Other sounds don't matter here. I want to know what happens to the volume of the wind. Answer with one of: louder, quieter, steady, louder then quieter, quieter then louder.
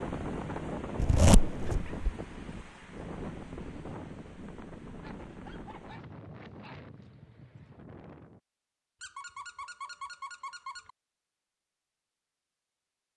quieter.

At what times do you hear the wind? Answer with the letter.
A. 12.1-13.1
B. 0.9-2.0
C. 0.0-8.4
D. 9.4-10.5
C.